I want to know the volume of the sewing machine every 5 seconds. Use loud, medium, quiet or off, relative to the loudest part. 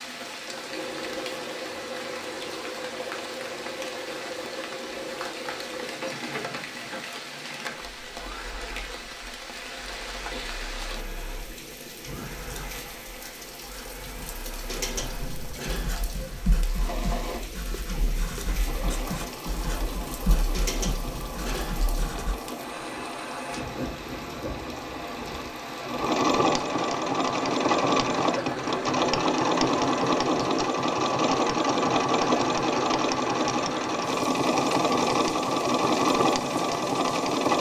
quiet, quiet, quiet, quiet, quiet, loud, loud, loud.